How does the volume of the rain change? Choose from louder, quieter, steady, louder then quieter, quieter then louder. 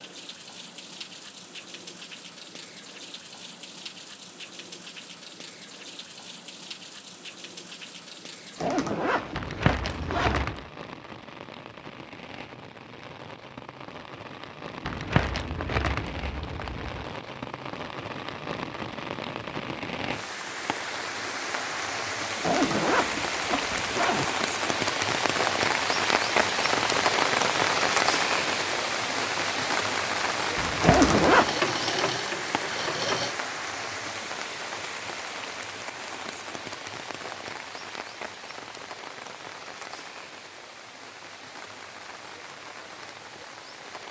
louder then quieter.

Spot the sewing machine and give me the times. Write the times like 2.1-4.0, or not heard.
31.4-33.4.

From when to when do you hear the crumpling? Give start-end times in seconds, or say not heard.
9.3-10.7, 14.8-17.1, 30.6-31.1.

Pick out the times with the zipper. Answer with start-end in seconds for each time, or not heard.
8.6-10.4, 22.4-24.2, 30.8-31.5.